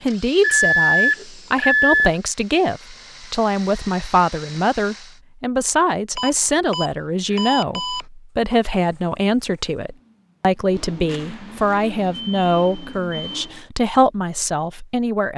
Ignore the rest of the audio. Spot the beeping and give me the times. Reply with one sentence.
The beeping can be heard from 0.4 to 2.1 s, from 6.2 to 8.1 s and from 11.1 to 13.5 s.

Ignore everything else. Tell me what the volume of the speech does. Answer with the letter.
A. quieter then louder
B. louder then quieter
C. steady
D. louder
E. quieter
C.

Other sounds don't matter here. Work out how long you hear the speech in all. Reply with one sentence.
The speech can be heard for 15 seconds in total.